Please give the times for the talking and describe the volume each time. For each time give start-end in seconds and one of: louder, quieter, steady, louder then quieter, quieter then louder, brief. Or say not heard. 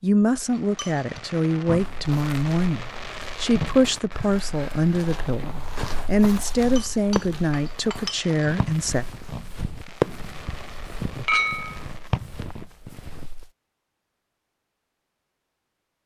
0.0-9.1 steady.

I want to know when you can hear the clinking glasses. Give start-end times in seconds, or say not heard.
0.6-1.2, 6.8-8.2, 11.2-11.8.